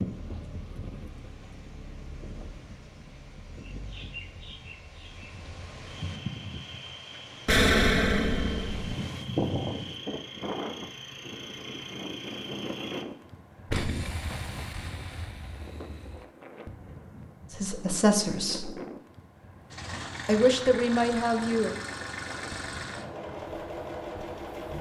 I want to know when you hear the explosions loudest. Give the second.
8 s.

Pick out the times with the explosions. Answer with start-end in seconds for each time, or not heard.
7.5-8.9, 13.7-16.2.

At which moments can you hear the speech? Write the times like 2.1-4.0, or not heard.
17.5-18.8, 20.2-21.8.